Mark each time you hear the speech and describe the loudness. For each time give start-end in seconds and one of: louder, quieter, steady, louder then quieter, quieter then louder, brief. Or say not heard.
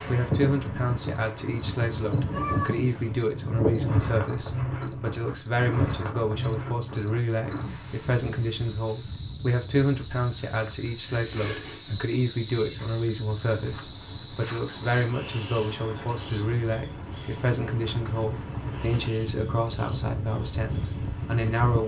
0.1-21.8 steady.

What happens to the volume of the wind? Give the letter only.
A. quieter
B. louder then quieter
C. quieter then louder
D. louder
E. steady
C.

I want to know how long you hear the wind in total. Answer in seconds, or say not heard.
22 s.